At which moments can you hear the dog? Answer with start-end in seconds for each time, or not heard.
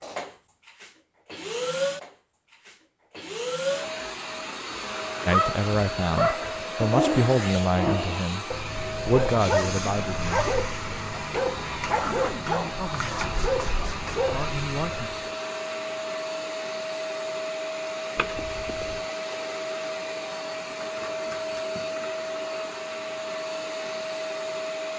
4.7-15.2.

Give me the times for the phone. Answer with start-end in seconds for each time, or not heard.
18.1-19.1.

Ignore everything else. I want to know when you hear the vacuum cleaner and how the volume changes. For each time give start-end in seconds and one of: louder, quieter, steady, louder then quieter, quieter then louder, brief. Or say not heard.
0.0-24.9 steady.